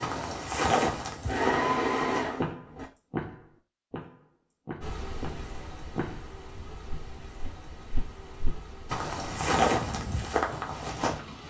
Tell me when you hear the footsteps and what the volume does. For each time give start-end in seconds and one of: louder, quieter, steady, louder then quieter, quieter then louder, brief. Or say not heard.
0.0-11.2 quieter then louder.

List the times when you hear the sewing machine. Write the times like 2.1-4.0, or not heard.
0.0-2.9.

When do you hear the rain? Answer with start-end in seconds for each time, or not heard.
4.8-11.4.